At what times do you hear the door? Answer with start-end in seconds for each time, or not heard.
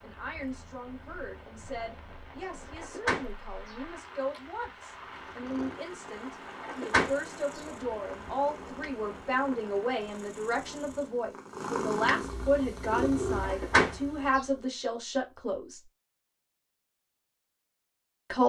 2.8-3.2, 6.6-7.6, 13.4-14.4.